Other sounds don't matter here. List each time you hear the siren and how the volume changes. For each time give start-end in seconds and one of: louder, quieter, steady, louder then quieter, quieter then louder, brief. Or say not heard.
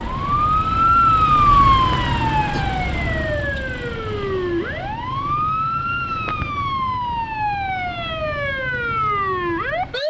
0.0-10.0 quieter.